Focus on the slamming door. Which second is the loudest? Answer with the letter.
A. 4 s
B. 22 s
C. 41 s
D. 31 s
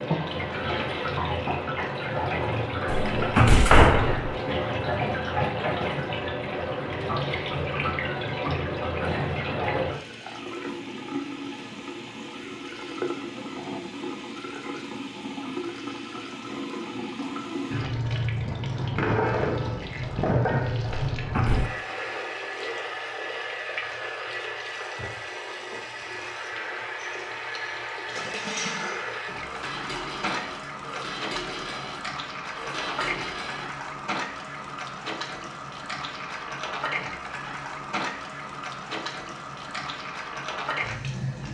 A.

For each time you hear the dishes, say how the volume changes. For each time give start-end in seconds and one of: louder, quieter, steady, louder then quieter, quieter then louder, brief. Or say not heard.
26.9-33.7 steady.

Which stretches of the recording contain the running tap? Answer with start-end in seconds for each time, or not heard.
0.0-41.4.